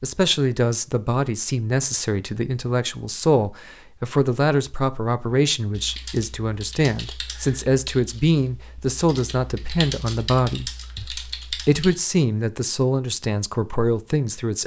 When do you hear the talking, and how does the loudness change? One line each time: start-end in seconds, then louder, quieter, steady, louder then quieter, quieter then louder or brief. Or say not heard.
0.0-14.6 steady.